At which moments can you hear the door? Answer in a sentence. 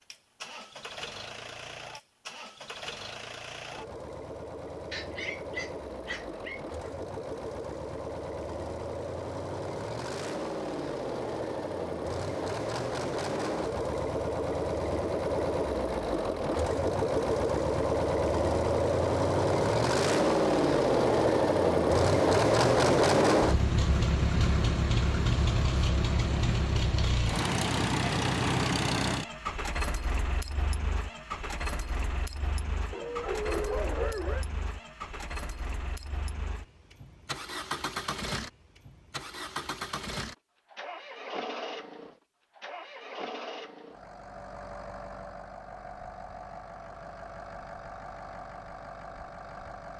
The door can't be heard in this clip.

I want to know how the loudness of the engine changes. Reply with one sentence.
The volume of the engine goes up, then down.